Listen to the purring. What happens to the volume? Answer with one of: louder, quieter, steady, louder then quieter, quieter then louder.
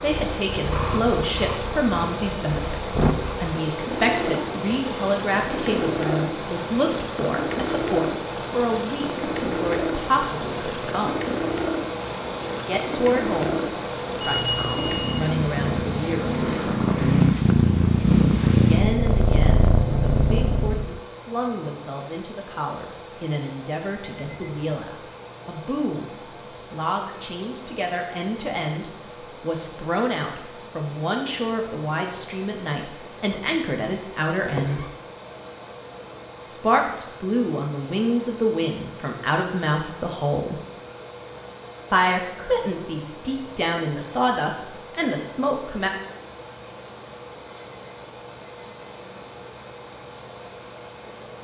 louder.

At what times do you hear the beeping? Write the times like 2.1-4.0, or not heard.
14.2-15.2, 24.0-24.6, 47.5-49.1.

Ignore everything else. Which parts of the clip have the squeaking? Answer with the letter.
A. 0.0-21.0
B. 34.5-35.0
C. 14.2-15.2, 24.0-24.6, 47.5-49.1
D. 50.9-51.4
B.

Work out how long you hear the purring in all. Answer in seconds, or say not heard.
21 s.